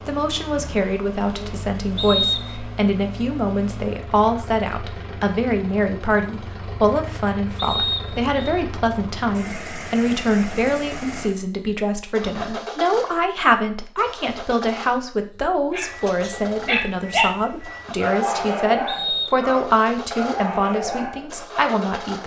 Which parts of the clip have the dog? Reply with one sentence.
You can hear the dog from 15.7 to 21.8 s.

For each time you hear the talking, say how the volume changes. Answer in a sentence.
The talking can be heard from 0.1 to 22.2 s, at a steady volume.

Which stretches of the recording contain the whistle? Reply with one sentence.
The whistle can be heard from 1.9 to 2.6 s, from 7.5 to 8.3 s and from 18.9 to 19.4 s.